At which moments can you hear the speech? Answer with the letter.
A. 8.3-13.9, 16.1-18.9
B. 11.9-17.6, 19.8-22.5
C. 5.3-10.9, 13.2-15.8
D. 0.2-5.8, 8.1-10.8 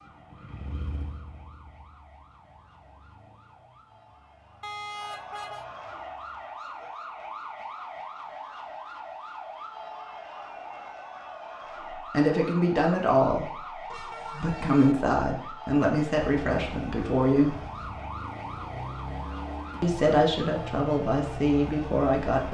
B.